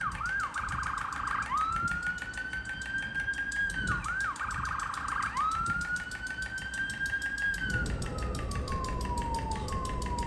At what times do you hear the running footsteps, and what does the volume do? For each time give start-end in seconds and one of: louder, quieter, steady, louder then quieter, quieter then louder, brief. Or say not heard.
not heard.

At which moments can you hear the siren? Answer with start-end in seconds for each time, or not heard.
0.0-10.2.